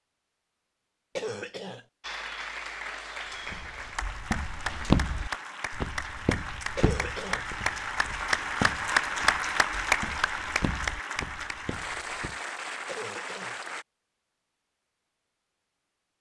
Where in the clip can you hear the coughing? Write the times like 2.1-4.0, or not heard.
1.1-1.9, 6.8-7.5, 12.8-13.6.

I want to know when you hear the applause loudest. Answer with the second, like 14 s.
9 s.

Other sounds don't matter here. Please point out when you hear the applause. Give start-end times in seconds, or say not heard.
2.0-13.8.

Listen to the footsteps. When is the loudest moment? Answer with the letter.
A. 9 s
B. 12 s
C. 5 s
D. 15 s
C.